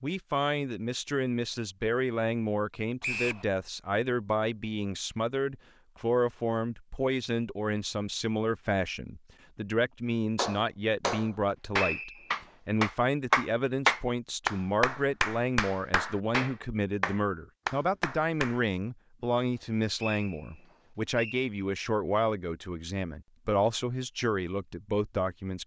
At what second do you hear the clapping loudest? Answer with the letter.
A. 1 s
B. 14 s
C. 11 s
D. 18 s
B.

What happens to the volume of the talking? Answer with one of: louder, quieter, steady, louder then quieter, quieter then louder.
steady.